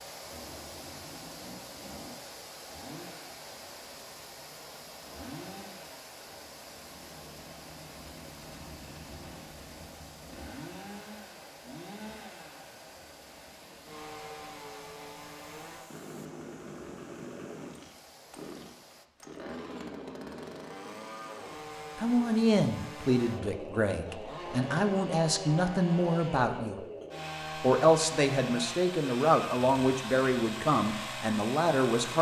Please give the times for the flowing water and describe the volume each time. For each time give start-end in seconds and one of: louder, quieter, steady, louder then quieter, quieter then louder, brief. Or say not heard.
0.0-19.1 quieter.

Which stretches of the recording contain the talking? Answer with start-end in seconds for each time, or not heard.
21.9-26.8, 27.6-32.1.